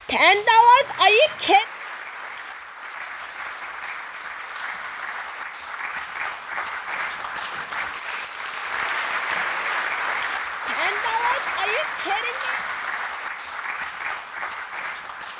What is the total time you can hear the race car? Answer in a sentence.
The race car can't be heard in this clip.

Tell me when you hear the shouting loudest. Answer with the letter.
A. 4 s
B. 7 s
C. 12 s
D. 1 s
D.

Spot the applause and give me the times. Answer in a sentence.
You can hear the applause from 0.0 to 15.3 s.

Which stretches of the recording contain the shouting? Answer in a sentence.
You can hear the shouting from 0.1 to 1.6 s and from 10.7 to 12.6 s.